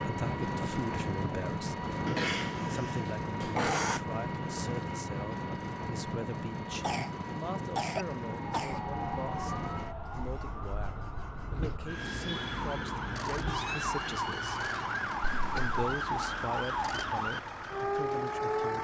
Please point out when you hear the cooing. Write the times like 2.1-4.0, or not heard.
not heard.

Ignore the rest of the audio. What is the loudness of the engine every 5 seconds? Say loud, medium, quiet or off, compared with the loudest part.
loud, loud, medium, medium.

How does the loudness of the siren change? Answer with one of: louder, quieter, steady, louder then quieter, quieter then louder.
louder.